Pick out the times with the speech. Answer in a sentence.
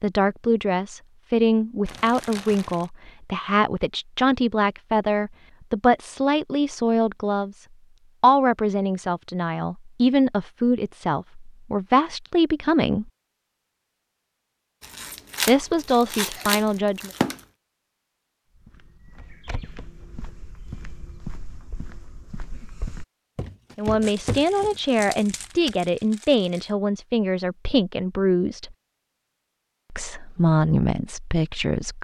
You can hear the speech from 0.0 to 13.1 s, from 15.4 to 17.1 s, from 23.8 to 28.8 s and from 29.9 to 31.9 s.